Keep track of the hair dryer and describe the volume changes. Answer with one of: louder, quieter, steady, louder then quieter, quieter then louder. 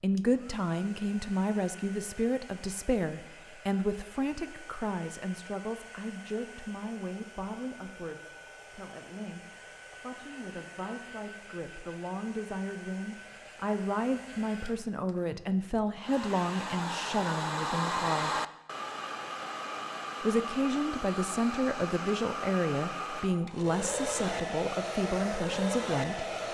louder.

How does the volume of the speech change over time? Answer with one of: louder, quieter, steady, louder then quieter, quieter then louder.
quieter then louder.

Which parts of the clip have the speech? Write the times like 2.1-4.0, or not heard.
0.0-18.4, 20.2-26.2.